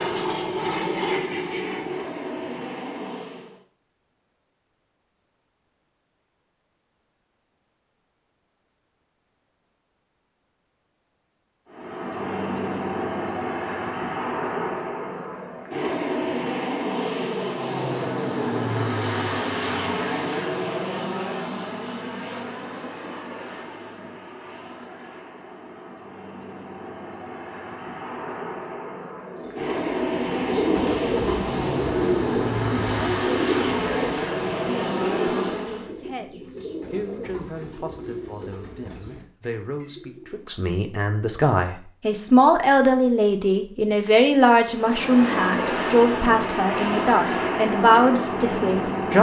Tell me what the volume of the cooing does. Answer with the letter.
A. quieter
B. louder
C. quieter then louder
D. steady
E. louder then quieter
A.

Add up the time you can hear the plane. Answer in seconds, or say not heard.
32 s.